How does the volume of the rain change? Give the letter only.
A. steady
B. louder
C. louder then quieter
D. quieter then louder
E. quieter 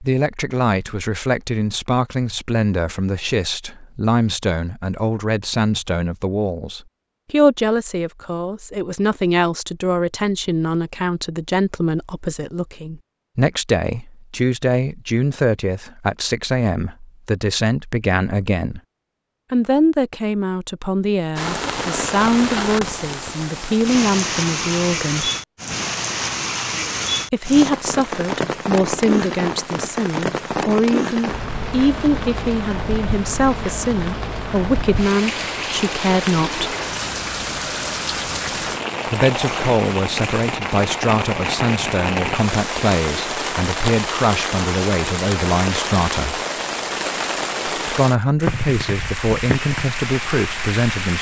A.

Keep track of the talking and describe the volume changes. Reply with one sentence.
The loudness of the talking stays about the same.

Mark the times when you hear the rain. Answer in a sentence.
The rain can be heard from 21.4 to 51.1 s.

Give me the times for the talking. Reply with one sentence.
You can hear the talking from 0.0 to 18.8 s, from 19.5 to 25.3 s, from 27.3 to 36.7 s, from 39.0 to 46.4 s and from 47.9 to 51.1 s.